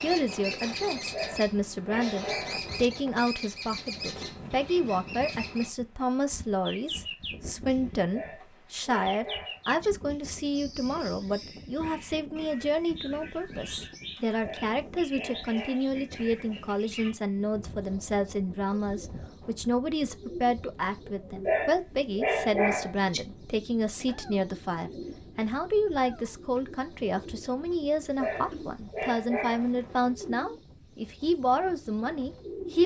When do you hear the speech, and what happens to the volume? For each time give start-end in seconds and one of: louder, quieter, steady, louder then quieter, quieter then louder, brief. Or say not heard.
0.0-32.8 steady.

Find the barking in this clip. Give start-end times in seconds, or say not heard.
1.1-2.9, 8.1-9.9, 14.4-16.1, 21.4-23.2, 28.1-29.7.